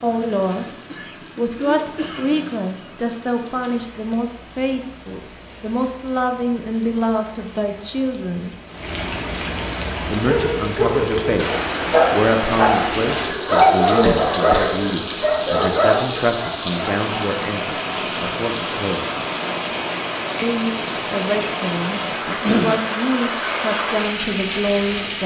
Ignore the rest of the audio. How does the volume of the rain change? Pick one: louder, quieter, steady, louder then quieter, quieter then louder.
louder.